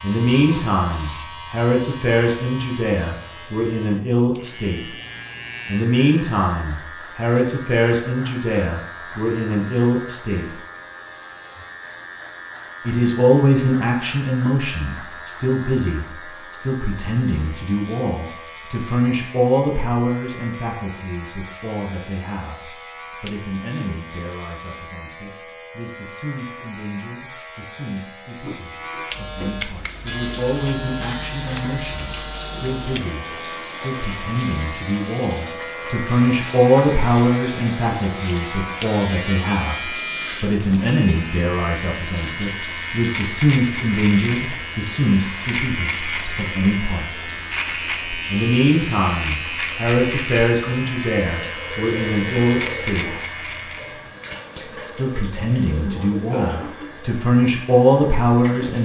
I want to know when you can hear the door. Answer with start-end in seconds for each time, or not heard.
28.4-29.5.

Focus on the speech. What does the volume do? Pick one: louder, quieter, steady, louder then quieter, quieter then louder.
quieter then louder.